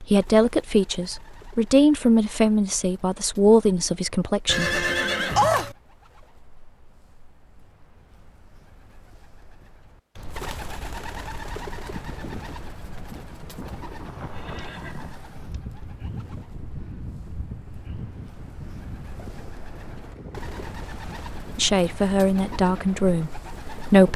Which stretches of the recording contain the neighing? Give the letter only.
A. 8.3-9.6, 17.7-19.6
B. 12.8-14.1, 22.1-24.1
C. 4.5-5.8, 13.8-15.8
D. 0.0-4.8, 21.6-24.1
C.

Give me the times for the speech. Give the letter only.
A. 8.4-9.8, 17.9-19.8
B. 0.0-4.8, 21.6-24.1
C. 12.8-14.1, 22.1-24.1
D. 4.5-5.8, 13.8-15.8
B.